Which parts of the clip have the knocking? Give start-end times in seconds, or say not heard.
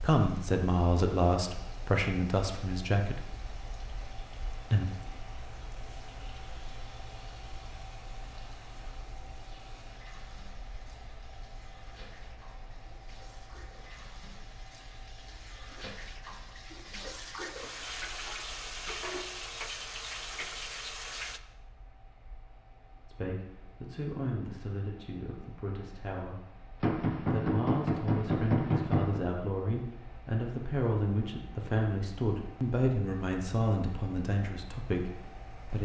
26.8-29.2.